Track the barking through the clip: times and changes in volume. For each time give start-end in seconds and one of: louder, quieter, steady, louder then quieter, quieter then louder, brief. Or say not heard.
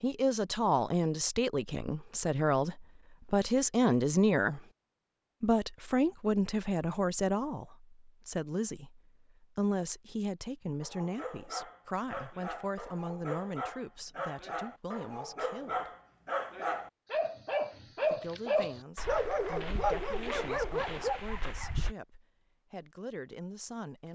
10.8-21.9 louder.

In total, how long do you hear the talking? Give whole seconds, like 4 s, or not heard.
21 s.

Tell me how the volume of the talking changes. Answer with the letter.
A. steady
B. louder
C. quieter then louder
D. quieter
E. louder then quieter
D.